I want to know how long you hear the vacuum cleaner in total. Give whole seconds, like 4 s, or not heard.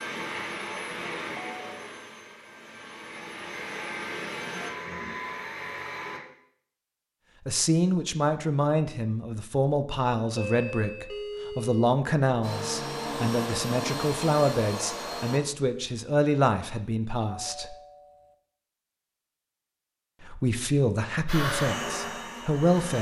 11 s.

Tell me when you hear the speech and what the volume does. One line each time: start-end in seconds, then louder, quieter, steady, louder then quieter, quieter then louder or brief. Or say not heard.
7.5-17.8 steady
20.2-22.9 brief.